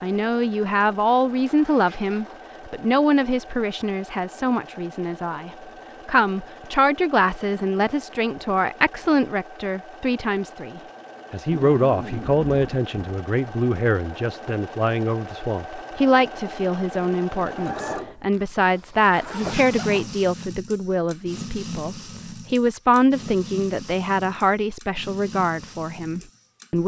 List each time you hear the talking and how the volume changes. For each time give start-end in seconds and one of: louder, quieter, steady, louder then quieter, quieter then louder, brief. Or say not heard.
0.0-26.8 steady.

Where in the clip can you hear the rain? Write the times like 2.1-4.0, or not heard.
not heard.